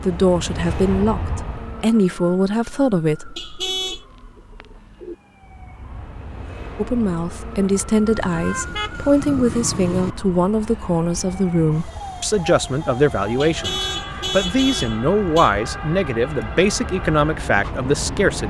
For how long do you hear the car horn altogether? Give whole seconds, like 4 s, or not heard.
5 s.